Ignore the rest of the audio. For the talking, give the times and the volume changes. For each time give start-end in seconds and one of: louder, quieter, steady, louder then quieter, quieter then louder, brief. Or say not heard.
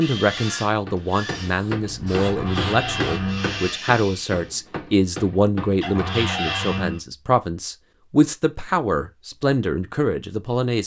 0.0-10.8 steady.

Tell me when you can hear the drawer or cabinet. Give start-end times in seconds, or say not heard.
2.2-3.8, 5.8-7.0.